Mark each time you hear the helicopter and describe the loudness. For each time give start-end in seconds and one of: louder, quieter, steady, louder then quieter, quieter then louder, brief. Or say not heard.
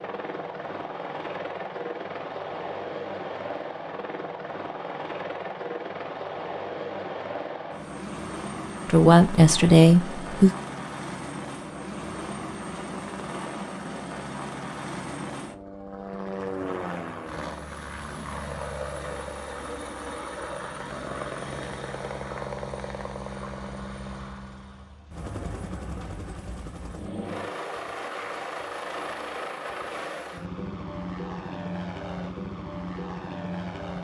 0.0-33.9 steady.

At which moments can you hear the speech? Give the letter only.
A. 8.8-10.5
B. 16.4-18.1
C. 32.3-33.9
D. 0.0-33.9
A.